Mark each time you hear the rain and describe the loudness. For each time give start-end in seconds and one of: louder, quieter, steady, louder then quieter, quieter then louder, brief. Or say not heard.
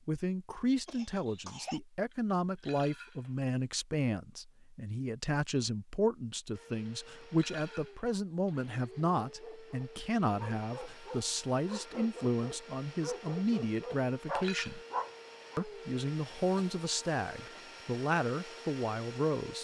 not heard.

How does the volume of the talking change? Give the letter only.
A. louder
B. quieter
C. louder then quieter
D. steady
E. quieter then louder
D.